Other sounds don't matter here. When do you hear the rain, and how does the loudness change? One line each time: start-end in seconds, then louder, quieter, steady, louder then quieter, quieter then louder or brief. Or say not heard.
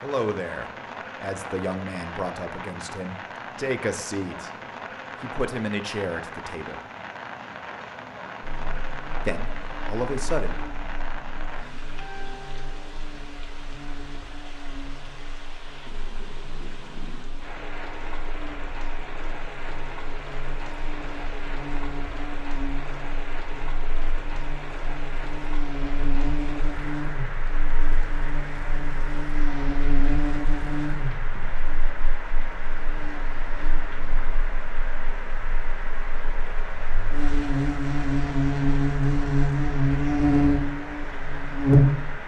0.0-42.2 steady.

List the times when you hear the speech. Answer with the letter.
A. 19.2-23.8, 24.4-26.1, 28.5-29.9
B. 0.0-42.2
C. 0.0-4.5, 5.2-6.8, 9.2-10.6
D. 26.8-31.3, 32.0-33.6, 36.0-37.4
C.